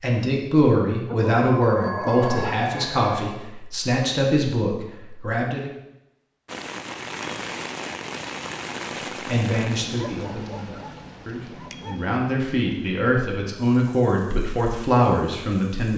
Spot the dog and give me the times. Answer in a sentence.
You can hear the dog from 1.1 to 2.5 s and from 9.9 to 12.1 s.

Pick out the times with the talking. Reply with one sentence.
You can hear the talking from 0.0 to 5.7 s and from 9.2 to 15.9 s.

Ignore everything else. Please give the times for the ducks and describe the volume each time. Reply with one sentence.
You can't hear the ducks here.